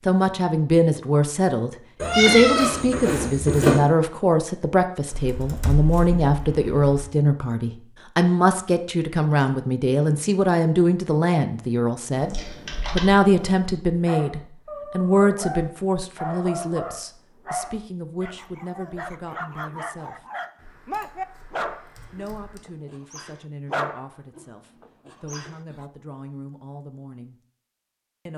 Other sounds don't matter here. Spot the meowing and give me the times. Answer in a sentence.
The meowing can be heard from 2.0 to 3.8 s.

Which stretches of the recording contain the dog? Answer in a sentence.
The dog can be heard from 14.1 to 25.9 s.